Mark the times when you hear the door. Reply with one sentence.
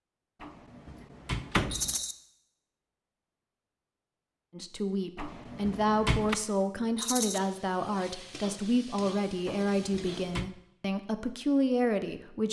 You can hear the door from 0.4 to 1.9 s, from 5.2 to 6.3 s and from 9.4 to 10.5 s.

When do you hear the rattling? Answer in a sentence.
You can hear the rattling from 1.7 to 2.1 s and from 7.0 to 7.4 s.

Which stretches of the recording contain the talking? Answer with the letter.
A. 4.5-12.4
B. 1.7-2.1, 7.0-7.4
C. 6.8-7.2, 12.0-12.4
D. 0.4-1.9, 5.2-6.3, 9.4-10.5
A.